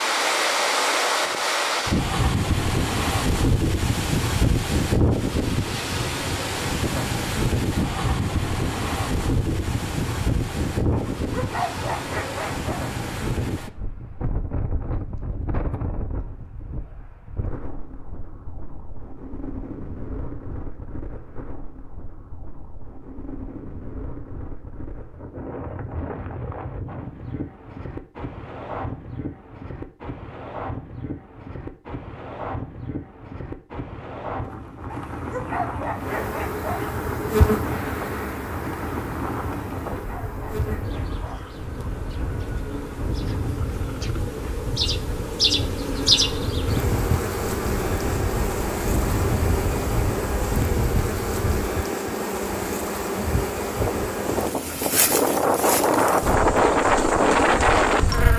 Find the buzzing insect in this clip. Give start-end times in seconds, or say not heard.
36.0-58.3.